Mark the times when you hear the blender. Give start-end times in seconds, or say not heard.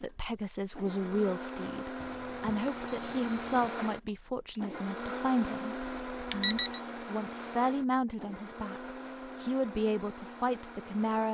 0.0-11.2.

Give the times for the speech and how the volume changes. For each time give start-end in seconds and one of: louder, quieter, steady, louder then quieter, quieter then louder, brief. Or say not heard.
0.0-11.2 steady.